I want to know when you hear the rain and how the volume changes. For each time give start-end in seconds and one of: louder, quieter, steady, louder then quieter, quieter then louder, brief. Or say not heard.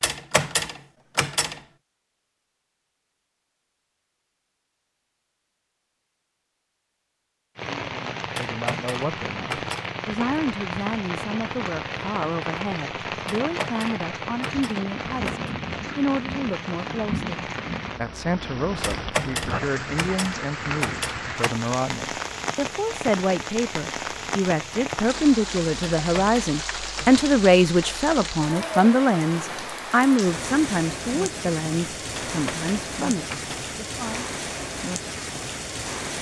7.5-36.1 steady.